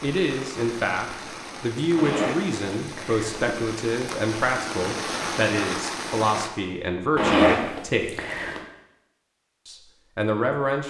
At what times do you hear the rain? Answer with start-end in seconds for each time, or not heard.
0.0-6.5.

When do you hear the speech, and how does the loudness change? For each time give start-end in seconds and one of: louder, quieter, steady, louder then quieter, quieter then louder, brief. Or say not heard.
0.0-8.1 steady
9.7-10.8 brief.